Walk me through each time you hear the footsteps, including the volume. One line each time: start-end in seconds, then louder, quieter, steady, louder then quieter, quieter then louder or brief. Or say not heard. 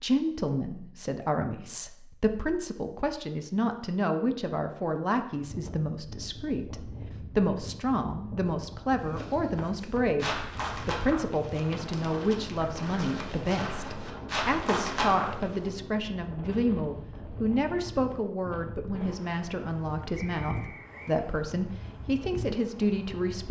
9.1-15.6 quieter then louder.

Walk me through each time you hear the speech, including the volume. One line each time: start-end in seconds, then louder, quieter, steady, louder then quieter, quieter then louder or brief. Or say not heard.
0.0-23.4 steady.